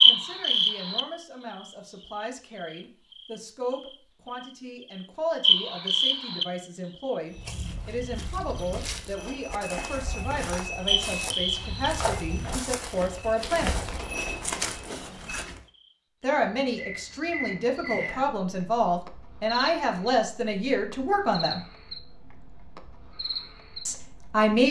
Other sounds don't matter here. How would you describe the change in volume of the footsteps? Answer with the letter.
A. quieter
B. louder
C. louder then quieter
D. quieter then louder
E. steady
B.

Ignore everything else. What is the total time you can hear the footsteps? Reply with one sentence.
You can hear the footsteps for 8 seconds altogether.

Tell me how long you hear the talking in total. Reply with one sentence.
You can hear the talking for 20 seconds altogether.